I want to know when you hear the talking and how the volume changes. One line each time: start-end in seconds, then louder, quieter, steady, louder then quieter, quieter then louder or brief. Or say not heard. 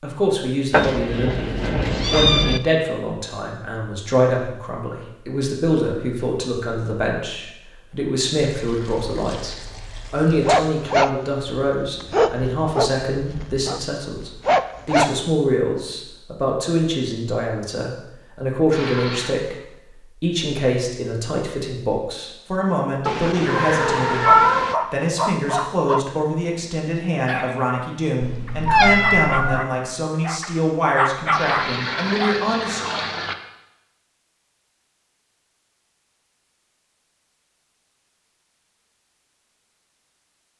0.0-24.3 steady
24.9-32.8 steady.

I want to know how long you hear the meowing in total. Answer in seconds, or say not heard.
5 s.